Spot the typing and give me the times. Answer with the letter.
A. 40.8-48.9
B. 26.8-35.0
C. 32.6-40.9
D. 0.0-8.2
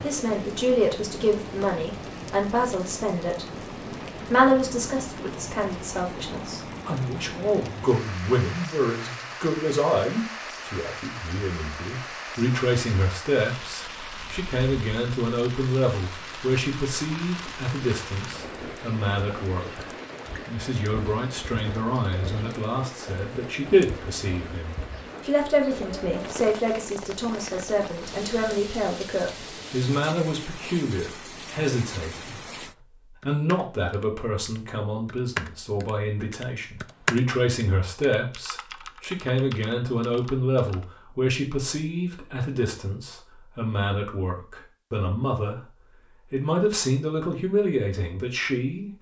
C.